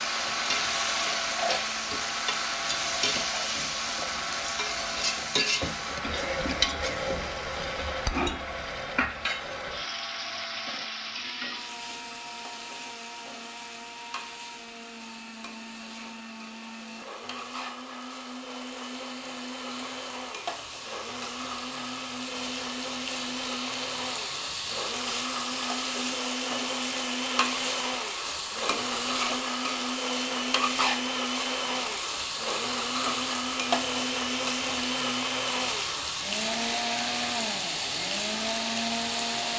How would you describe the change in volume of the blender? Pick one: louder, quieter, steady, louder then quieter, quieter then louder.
quieter then louder.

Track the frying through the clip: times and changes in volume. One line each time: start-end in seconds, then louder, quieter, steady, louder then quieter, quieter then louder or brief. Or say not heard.
0.0-39.5 quieter then louder.